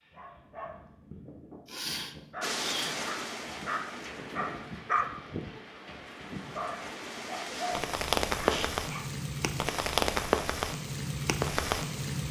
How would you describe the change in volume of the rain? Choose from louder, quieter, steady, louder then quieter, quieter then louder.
quieter then louder.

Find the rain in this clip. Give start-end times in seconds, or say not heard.
2.4-12.2.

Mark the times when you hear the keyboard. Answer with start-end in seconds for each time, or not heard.
not heard.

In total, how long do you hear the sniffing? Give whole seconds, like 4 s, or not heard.
2 s.